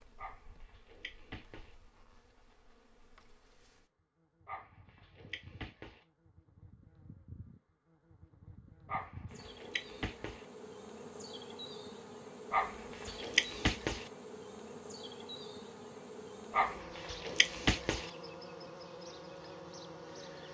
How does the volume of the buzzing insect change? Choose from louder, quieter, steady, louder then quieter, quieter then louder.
louder.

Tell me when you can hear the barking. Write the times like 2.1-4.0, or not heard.
0.1-1.8, 4.5-6.0, 8.8-10.4, 12.5-14.1, 16.5-18.1.